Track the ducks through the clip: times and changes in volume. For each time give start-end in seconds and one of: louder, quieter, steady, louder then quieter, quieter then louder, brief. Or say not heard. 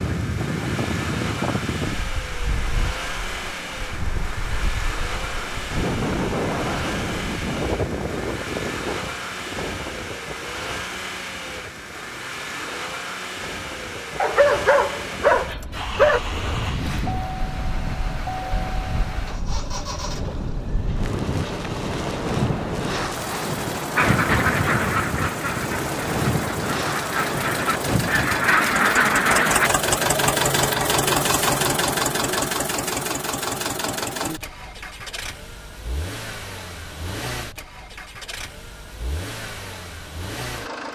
23.9-29.7 quieter then louder.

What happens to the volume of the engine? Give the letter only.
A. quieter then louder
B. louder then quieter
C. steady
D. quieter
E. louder
B.